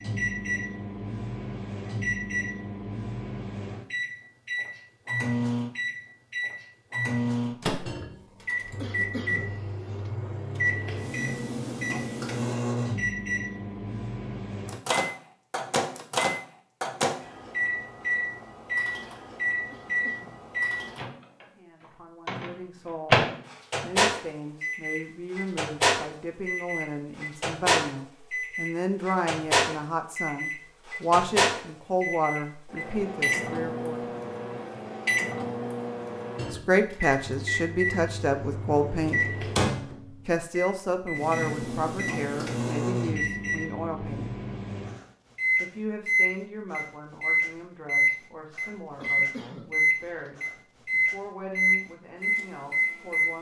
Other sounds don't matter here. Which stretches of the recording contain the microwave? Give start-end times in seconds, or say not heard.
0.0-53.3.